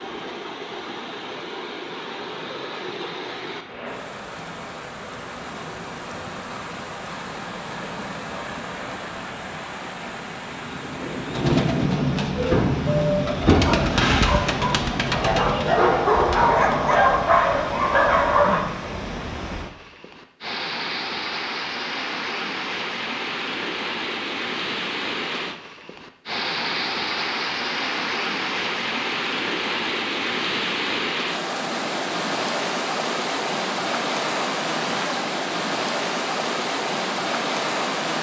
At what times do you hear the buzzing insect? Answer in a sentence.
The buzzing insect can't be heard in this clip.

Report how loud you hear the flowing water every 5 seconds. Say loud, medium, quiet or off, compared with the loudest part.
medium, medium, medium, medium, loud, loud, loud, loud.